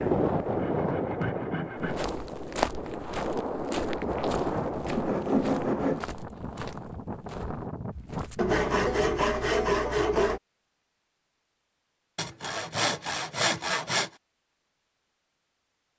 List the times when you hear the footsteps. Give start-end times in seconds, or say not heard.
1.8-8.6.